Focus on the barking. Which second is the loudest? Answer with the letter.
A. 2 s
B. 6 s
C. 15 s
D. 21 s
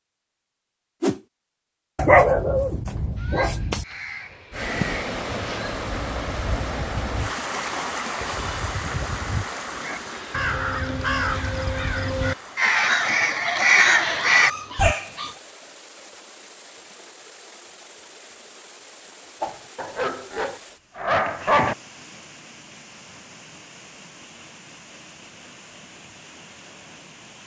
A.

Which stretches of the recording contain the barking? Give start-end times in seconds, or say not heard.
1.9-3.9, 13.8-15.3, 19.8-21.8.